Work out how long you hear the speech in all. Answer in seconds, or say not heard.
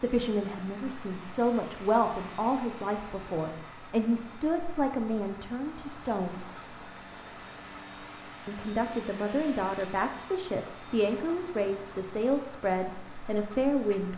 12 s.